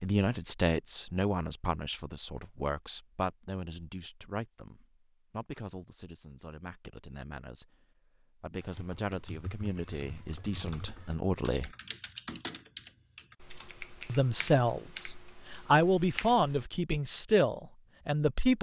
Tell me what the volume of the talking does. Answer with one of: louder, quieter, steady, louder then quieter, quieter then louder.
quieter then louder.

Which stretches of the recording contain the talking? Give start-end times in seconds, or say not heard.
0.0-11.7, 14.1-18.5.